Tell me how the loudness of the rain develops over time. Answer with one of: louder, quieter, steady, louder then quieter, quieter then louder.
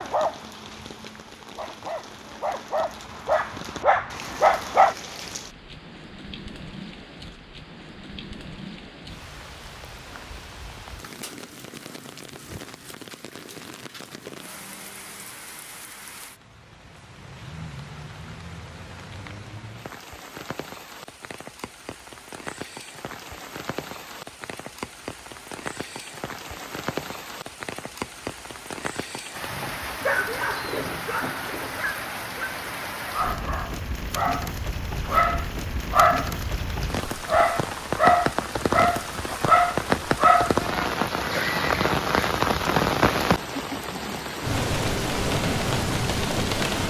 louder.